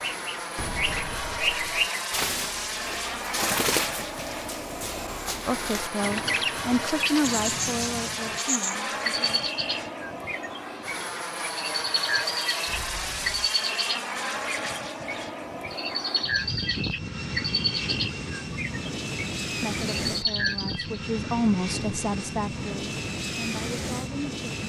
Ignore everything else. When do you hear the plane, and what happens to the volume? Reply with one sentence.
The plane can be heard from 0.0 to 24.6 s, at a steady volume.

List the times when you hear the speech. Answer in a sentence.
The speech can be heard from 5.5 to 9.5 s and from 19.6 to 24.4 s.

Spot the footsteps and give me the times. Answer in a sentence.
The footsteps can't be heard in this clip.